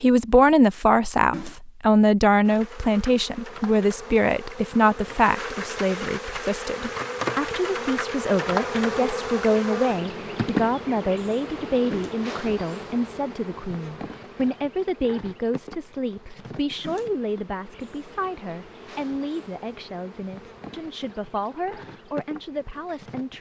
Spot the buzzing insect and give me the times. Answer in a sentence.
You can hear the buzzing insect from 2.4 to 23.3 s.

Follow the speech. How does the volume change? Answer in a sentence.
The loudness of the speech goes down.